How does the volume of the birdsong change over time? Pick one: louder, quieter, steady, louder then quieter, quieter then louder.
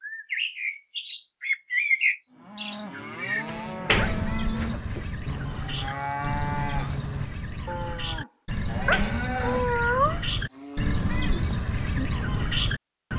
quieter then louder.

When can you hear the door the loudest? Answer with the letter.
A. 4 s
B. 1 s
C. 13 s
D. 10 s
A.